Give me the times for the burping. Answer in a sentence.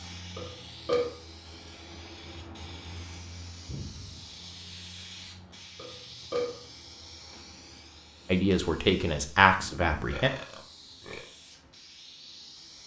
The burping can be heard from 0.3 to 1.1 s, from 5.8 to 6.7 s and from 10.1 to 11.2 s.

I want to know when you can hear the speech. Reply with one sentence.
The speech can be heard from 8.3 to 10.3 s.